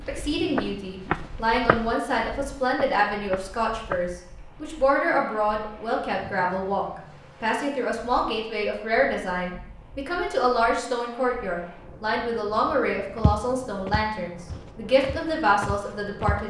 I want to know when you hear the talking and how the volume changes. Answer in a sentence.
You can hear the talking from 0.0 to 16.4 s, at a steady volume.